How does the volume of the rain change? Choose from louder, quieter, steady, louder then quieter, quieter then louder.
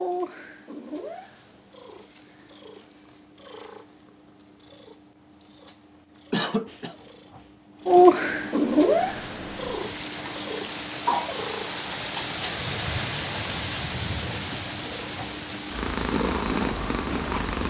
louder then quieter.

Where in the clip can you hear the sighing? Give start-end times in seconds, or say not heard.
not heard.